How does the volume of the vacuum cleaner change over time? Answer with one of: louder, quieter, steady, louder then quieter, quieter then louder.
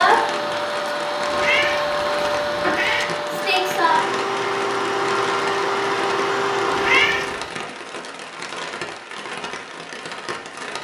steady.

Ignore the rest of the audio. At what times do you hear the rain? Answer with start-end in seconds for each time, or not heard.
0.0-10.7.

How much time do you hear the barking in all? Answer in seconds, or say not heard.
not heard.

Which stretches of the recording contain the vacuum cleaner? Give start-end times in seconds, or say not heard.
0.0-7.5.